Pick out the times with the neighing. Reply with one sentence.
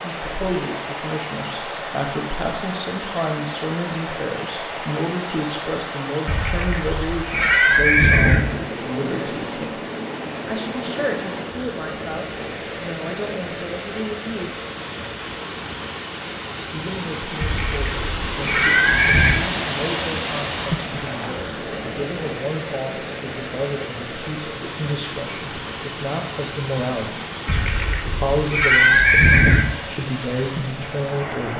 The neighing can be heard from 6.2 to 8.4 s, from 17.4 to 19.4 s and from 27.4 to 29.6 s.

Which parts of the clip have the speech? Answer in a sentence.
You can hear the speech from 0.0 to 9.8 s, from 10.4 to 14.5 s and from 16.7 to 31.5 s.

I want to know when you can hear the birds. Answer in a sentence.
You can't hear the birds here.